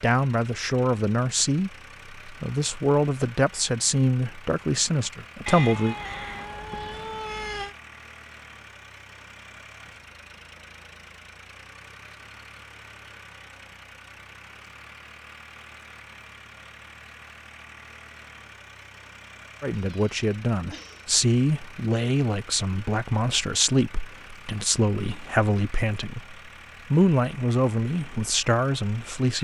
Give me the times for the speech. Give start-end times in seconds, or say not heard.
0.0-6.0, 19.6-29.3.